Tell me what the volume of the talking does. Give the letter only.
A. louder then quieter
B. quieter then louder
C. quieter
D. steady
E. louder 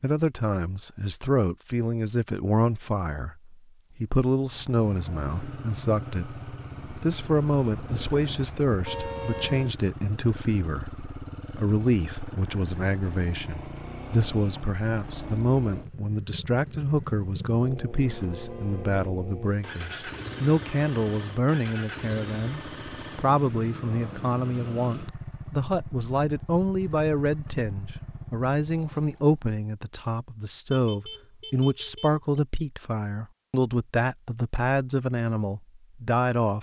D.